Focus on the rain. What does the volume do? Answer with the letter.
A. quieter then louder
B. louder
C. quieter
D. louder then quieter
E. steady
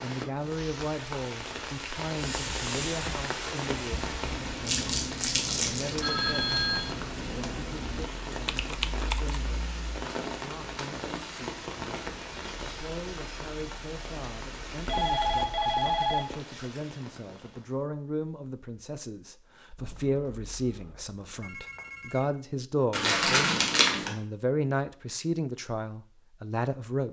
C.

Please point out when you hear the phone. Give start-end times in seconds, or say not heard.
6.0-7.5, 14.8-16.4, 19.8-22.3.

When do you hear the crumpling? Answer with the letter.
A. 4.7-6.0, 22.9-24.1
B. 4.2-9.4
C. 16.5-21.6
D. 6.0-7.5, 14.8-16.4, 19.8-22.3
A.